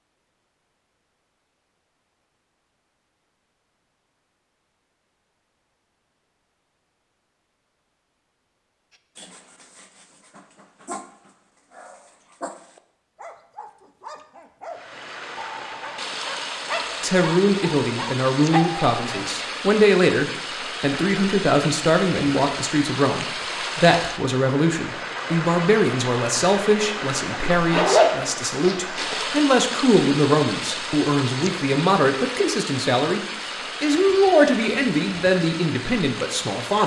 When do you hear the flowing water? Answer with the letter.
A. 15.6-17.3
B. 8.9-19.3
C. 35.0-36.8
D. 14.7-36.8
D.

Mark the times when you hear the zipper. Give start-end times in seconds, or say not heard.
27.4-29.1.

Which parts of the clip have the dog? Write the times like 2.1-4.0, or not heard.
8.9-19.3.